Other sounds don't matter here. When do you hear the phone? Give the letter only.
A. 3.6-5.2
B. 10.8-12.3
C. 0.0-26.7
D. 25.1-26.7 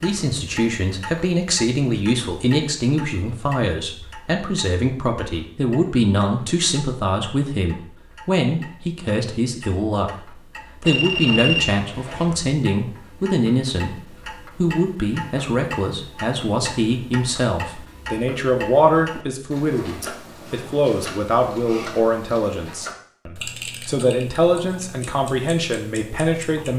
B.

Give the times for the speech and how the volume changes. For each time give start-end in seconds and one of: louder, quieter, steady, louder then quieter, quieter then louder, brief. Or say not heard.
0.0-26.7 steady.